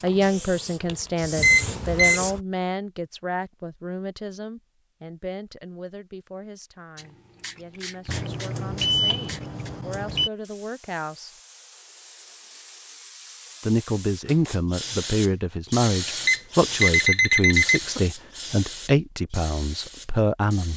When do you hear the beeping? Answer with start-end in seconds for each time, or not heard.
1.4-2.2, 8.1-10.3, 16.2-18.0.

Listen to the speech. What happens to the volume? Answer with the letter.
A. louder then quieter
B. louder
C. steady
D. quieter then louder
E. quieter
D.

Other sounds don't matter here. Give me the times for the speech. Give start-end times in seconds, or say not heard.
0.0-11.3, 13.6-20.7.